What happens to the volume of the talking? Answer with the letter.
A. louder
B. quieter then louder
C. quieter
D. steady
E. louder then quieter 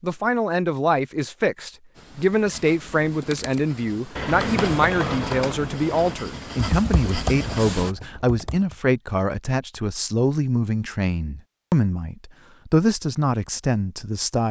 D.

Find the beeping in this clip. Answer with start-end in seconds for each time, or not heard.
not heard.